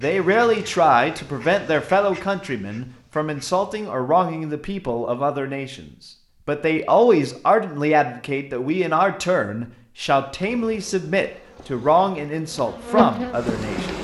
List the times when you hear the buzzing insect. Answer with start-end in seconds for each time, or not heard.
10.4-13.9.